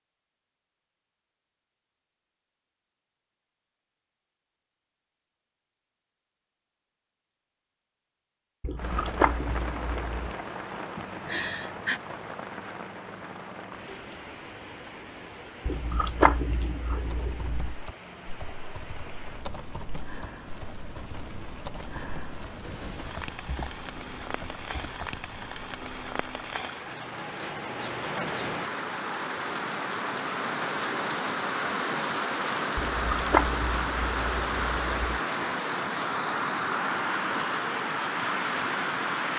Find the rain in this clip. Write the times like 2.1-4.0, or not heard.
8.8-39.3.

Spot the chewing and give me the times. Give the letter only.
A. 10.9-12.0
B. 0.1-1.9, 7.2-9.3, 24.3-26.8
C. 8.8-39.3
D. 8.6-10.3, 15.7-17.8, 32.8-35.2
D.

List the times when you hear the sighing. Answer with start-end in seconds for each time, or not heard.
10.9-12.0.